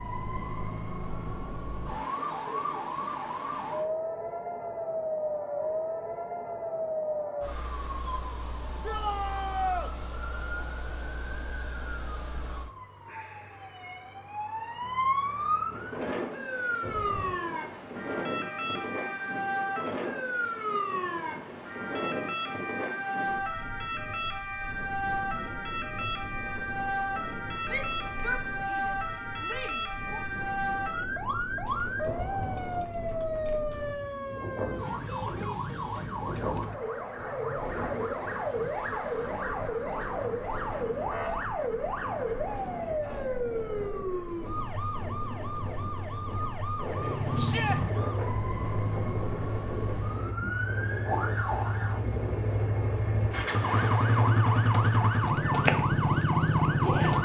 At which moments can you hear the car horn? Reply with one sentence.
The car horn can be heard from 16.8 to 17.4 s and from 32.0 to 32.9 s.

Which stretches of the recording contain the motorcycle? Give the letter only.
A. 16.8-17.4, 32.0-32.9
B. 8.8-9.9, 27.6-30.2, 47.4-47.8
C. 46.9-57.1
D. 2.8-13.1
C.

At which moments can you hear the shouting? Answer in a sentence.
The shouting can be heard from 8.8 to 9.9 s, from 27.6 to 30.2 s and from 47.4 to 47.8 s.